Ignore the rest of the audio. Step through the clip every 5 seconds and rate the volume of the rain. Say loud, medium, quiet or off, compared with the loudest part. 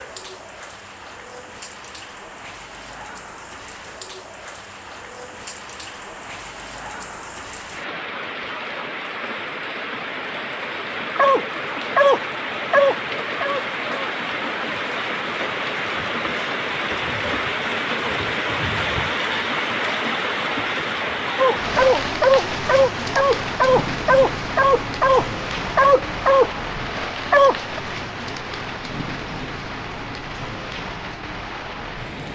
quiet, medium, loud, loud, loud, medium, medium.